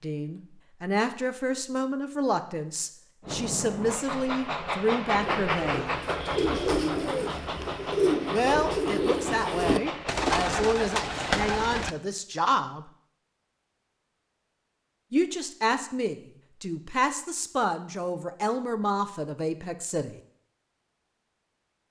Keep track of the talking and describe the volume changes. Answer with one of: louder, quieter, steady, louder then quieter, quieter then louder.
steady.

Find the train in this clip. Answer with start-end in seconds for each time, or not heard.
3.2-10.2.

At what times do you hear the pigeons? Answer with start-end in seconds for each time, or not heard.
5.1-11.9.